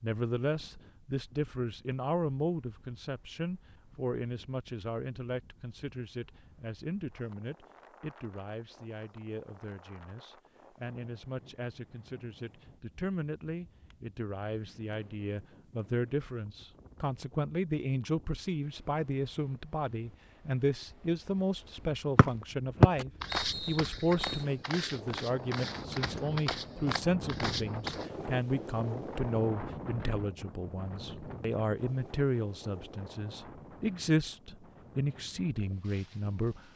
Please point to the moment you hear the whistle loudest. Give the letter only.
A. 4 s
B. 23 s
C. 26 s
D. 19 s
B.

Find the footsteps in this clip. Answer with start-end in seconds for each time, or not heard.
22.9-28.1.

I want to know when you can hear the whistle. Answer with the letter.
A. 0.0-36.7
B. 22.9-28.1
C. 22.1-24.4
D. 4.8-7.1
C.